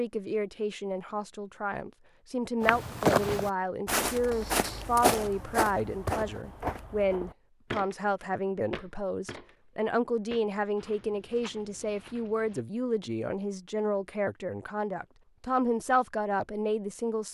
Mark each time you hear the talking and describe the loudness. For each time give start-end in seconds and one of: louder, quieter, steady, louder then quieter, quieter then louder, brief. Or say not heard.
0.0-17.3 steady.